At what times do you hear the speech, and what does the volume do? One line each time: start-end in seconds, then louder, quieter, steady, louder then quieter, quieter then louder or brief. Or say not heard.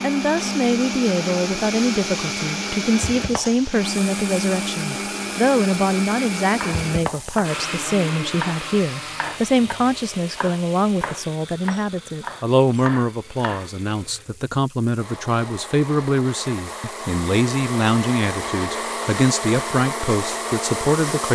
0.0-21.3 steady.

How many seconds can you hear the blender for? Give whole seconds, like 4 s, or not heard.
21 s.